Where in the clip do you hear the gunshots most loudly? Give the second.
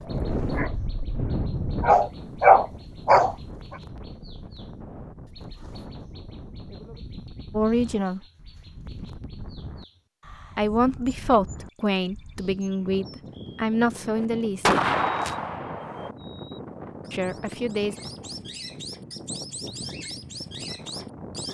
15 s.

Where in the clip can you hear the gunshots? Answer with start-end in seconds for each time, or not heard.
14.2-16.1.